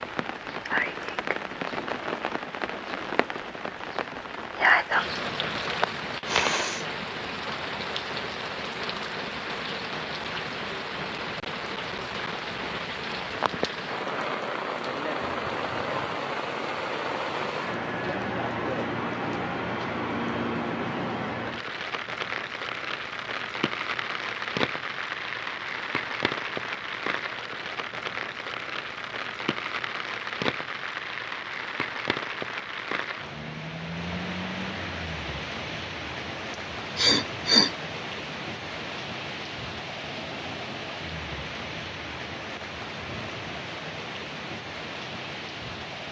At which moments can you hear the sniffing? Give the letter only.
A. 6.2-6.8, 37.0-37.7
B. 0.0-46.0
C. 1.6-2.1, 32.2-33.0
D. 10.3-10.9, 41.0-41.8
A.